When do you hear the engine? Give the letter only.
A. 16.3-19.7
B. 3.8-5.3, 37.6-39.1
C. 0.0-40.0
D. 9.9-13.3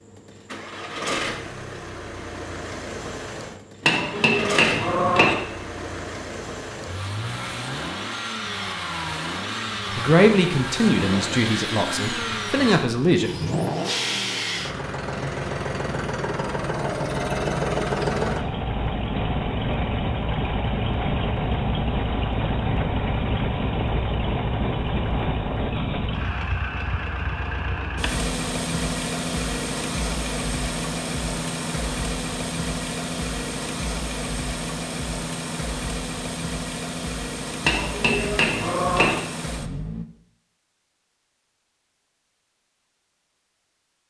C.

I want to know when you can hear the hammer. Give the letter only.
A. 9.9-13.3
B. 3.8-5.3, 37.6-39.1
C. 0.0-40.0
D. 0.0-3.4
B.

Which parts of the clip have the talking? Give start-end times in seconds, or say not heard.
9.9-13.3.